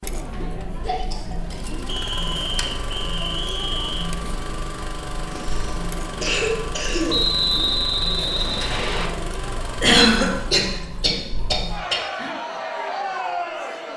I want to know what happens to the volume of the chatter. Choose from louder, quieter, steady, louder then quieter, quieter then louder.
louder.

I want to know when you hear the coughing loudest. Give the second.
10 s.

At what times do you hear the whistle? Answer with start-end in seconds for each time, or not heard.
1.9-4.1, 7.0-9.1.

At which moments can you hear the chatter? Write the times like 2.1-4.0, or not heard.
0.0-13.9.